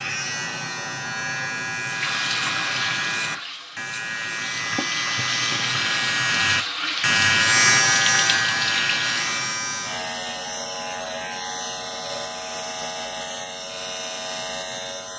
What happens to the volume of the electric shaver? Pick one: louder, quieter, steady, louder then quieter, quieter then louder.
louder then quieter.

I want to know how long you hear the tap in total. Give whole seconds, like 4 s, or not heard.
8 s.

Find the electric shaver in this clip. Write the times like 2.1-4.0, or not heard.
0.0-15.1.